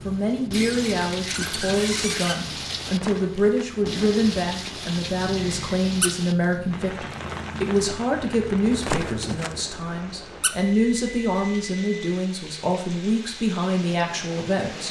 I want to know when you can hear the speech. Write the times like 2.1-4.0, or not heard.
0.1-14.8.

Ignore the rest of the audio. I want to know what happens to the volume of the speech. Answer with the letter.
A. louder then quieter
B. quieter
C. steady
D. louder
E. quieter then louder
C.